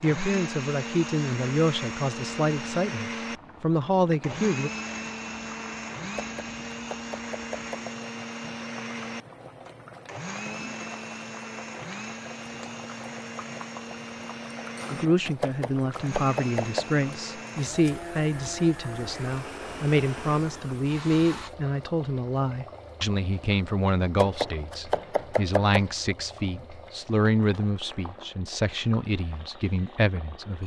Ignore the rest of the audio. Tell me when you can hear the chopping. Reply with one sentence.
You can hear the chopping from 6.2 to 7.9 s, from 15.4 to 16.9 s and from 24.1 to 25.9 s.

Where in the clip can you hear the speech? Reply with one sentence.
The speech can be heard from 0.0 to 4.7 s and from 14.9 to 30.6 s.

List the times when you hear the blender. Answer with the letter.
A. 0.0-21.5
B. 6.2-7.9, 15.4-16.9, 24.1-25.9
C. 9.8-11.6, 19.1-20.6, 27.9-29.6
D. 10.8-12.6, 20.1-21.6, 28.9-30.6
A.